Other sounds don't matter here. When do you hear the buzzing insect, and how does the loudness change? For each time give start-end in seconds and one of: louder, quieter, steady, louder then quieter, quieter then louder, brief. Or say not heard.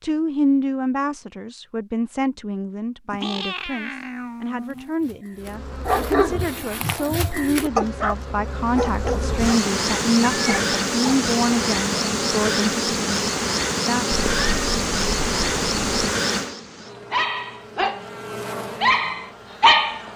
5.3-20.1 louder then quieter.